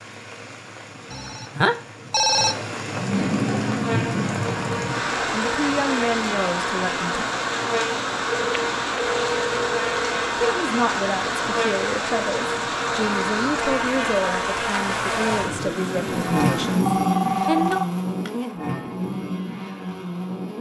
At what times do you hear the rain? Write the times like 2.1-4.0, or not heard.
0.0-16.9.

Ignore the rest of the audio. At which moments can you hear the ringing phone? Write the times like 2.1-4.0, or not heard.
1.1-2.5, 8.3-10.3, 16.9-18.5.